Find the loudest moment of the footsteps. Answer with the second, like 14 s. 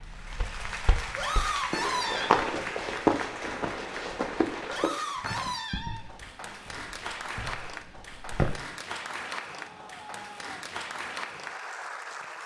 3 s.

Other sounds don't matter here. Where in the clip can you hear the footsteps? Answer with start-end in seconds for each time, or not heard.
0.0-8.6.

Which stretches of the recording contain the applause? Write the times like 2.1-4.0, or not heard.
0.0-12.4.